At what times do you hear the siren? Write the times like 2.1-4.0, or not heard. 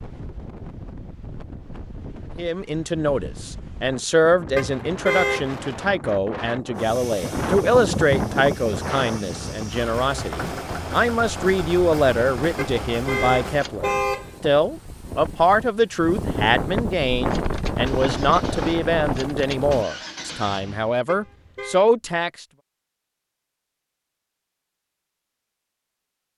not heard.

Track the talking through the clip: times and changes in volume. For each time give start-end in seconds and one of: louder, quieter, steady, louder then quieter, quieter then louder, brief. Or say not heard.
2.4-22.4 steady.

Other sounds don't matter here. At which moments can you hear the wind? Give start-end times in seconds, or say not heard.
0.0-19.9.